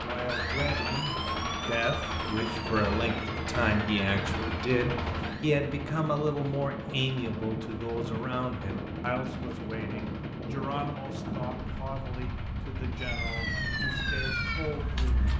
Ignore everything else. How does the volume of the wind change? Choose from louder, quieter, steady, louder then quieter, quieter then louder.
steady.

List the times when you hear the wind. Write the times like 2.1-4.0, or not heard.
2.5-15.3.